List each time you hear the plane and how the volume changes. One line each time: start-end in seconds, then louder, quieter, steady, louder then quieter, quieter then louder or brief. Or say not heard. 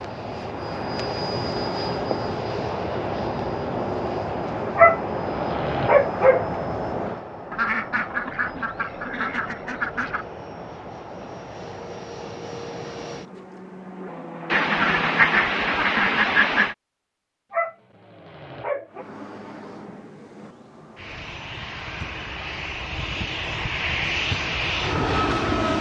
0.0-15.3 quieter
18.9-25.7 louder.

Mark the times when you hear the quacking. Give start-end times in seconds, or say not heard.
7.5-10.2, 14.5-16.8.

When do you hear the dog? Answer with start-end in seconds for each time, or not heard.
4.8-6.5, 17.5-19.1.